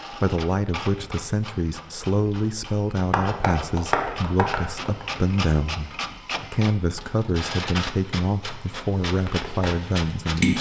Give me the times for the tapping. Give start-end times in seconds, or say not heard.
3.1-5.0, 9.1-10.5.